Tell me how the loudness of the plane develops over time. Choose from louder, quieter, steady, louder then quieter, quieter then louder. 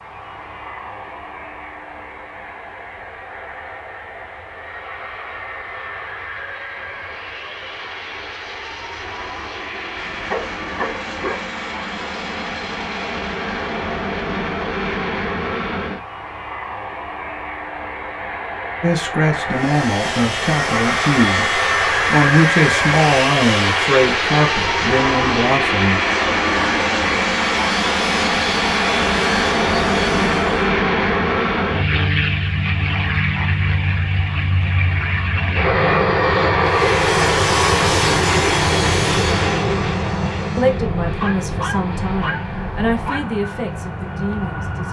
louder.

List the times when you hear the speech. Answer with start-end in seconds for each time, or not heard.
18.8-26.0, 40.5-44.8.